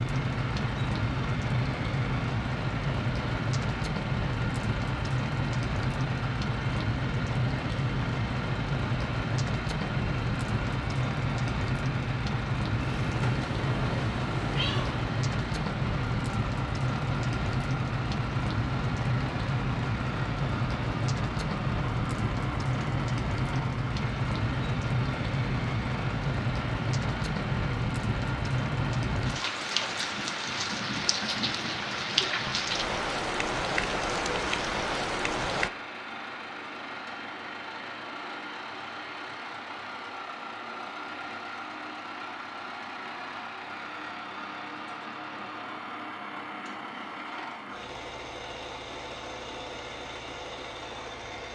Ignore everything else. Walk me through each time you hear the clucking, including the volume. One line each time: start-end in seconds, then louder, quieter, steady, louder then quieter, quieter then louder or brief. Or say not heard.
not heard.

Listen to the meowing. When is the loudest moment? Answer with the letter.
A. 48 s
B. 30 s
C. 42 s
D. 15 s
D.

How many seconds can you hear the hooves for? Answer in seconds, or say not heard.
not heard.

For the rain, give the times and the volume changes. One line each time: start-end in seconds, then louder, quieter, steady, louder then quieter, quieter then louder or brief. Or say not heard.
0.0-35.7 steady.